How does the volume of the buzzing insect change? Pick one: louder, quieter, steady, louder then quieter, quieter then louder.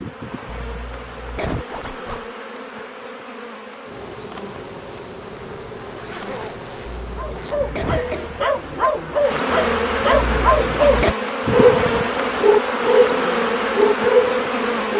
louder.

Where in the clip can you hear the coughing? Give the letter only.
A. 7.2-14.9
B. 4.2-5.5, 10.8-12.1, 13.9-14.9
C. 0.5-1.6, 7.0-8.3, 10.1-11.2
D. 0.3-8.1
C.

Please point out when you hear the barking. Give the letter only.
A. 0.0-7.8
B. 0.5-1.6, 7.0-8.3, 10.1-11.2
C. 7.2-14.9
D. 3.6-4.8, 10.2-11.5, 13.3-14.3
C.